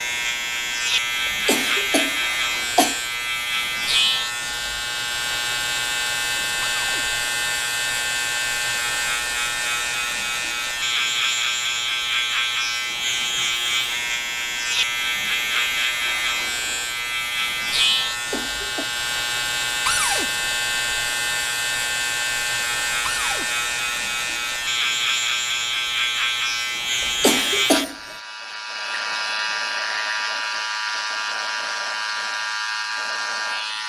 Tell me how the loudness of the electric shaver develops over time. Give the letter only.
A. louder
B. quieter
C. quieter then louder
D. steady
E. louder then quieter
D.